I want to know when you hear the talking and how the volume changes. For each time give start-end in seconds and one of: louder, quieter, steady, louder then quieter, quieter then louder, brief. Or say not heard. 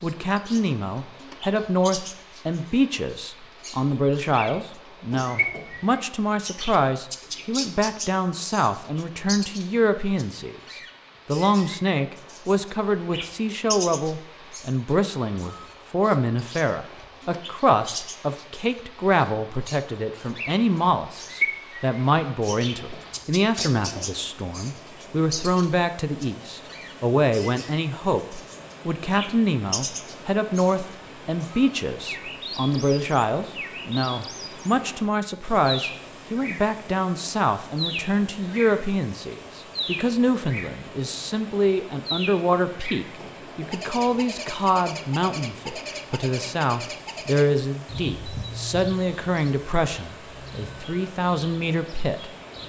0.0-52.2 steady.